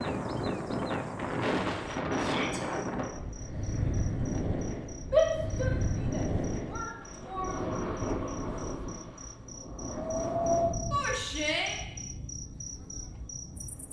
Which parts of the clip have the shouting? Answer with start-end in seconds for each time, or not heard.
2.1-2.6, 5.1-7.5, 10.9-11.8.